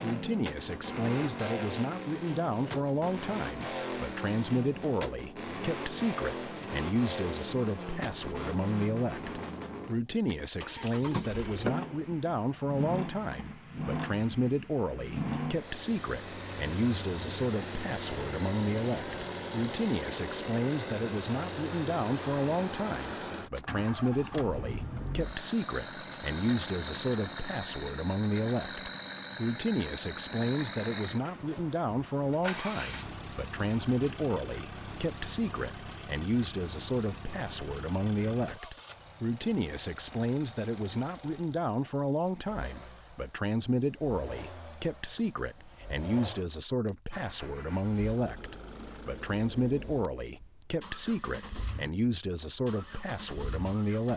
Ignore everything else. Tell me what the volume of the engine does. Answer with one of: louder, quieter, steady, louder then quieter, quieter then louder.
quieter.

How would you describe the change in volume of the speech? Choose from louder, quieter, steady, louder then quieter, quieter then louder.
steady.